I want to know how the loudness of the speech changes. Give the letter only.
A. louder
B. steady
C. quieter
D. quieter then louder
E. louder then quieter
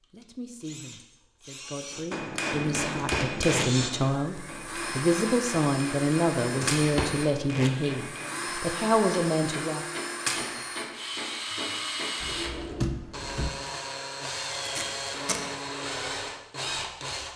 A.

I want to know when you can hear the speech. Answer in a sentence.
You can hear the speech from 0.1 to 9.8 s.